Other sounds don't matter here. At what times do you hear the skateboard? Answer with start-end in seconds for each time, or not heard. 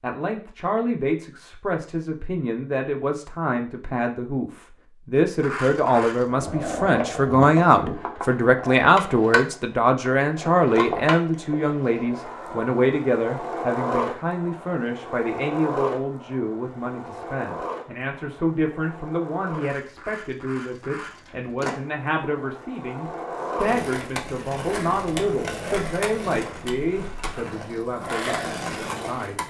5.4-29.4.